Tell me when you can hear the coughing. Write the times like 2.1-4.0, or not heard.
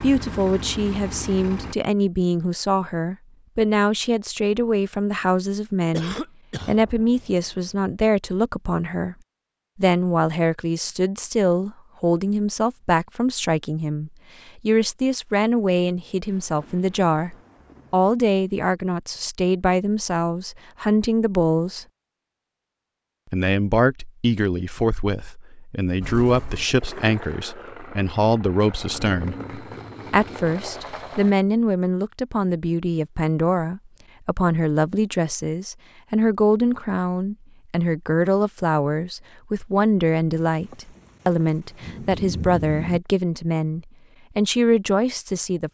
5.9-6.8.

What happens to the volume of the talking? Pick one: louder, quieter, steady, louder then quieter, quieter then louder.
steady.